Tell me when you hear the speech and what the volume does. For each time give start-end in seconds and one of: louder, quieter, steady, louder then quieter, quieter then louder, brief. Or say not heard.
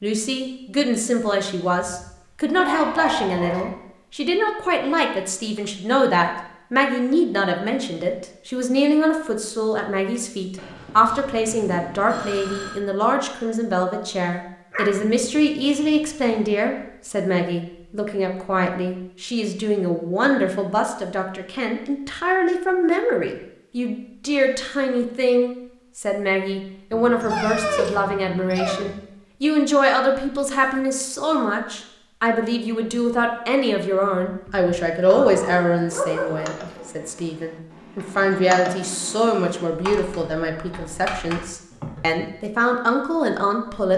0.0-43.9 steady.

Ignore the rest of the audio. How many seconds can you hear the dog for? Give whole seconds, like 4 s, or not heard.
7 s.